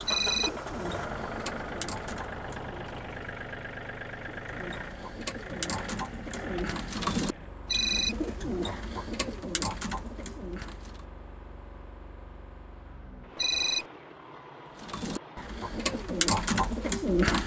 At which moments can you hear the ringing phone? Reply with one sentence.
The ringing phone can be heard from 0.1 to 0.6 s, from 7.7 to 8.2 s and from 13.3 to 13.8 s.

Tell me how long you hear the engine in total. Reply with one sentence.
You can hear the engine for 17 seconds altogether.